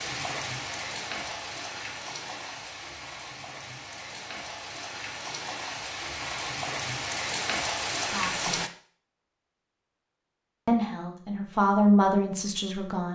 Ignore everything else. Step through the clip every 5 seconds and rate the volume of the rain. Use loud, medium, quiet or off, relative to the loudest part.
medium, loud, off.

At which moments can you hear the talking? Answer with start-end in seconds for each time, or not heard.
8.1-8.6, 10.7-13.1.